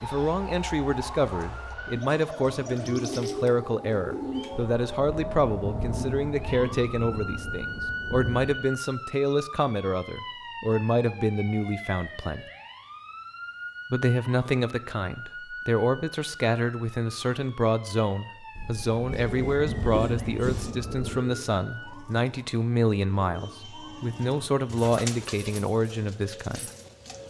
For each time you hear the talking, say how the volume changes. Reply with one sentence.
You can hear the talking from 0.0 to 12.4 s, at a steady volume; and from 13.9 to 26.6 s, at a steady volume.